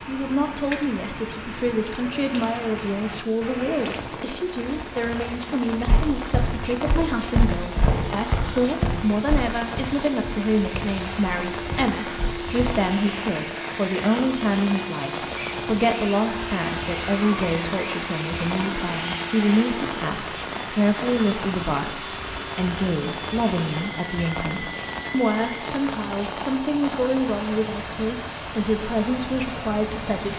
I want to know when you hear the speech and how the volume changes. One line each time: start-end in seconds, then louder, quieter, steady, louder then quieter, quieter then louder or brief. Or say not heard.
0.1-30.3 steady.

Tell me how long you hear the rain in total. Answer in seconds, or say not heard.
30 s.